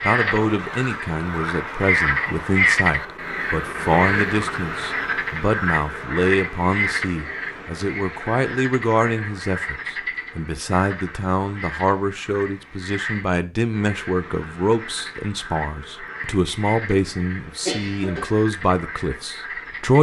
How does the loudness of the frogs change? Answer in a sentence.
The volume of the frogs goes down.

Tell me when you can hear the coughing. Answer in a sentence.
The coughing can be heard from 17.6 to 18.2 s.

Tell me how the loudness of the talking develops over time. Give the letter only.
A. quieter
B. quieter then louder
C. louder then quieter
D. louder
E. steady
E.